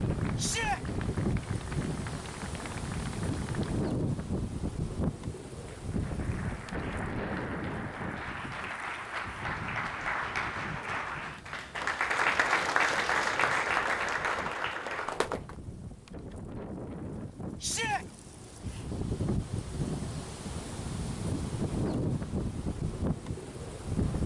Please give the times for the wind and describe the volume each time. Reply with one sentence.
You can hear the wind from 0.0 to 24.2 s, getting quieter then louder.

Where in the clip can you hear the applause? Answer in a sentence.
The applause can be heard from 0.0 to 3.9 s and from 5.7 to 15.6 s.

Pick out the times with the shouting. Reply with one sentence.
You can hear the shouting from 0.3 to 0.8 s and from 17.6 to 18.1 s.